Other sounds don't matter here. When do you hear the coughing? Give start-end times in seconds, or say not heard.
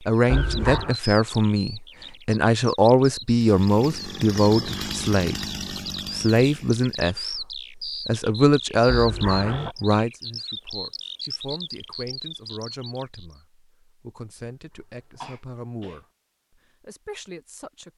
0.3-0.9, 8.8-9.8, 15.2-16.0.